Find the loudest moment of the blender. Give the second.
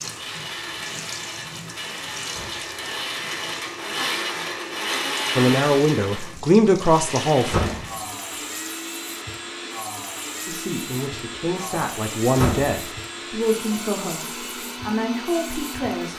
5 s.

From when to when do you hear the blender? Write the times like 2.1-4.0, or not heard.
0.0-16.1.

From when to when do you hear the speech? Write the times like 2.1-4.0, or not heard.
5.3-7.6, 10.4-16.1.